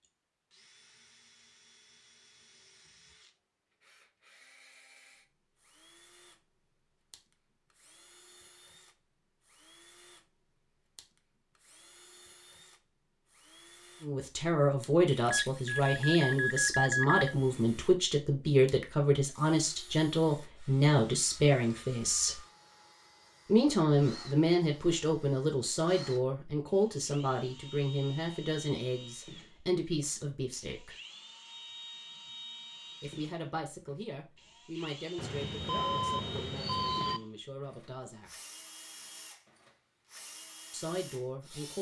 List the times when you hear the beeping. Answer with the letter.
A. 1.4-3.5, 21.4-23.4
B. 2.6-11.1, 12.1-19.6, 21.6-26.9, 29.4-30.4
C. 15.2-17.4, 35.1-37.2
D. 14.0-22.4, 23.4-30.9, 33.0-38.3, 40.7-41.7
C.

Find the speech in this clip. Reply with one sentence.
You can hear the speech from 14.0 to 22.4 s, from 23.4 to 30.9 s, from 33.0 to 38.3 s and from 40.7 to 41.7 s.